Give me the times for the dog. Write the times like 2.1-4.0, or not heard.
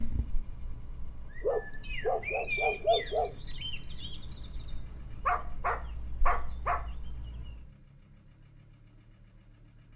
1.4-3.4, 5.2-6.8.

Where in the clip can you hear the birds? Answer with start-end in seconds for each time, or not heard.
0.0-7.7.